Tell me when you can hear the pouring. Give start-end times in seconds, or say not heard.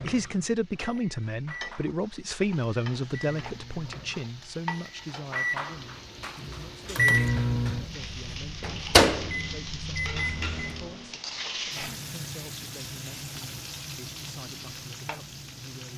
not heard.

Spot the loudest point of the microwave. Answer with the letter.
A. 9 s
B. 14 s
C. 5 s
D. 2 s
A.